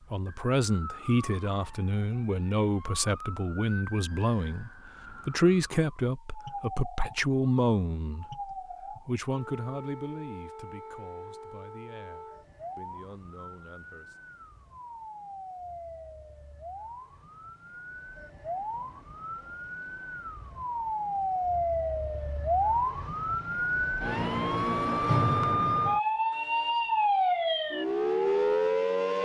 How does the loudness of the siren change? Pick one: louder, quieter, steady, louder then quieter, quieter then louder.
louder.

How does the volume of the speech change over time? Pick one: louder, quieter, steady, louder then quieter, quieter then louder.
quieter.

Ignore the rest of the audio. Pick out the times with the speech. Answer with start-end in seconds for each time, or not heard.
0.1-14.2.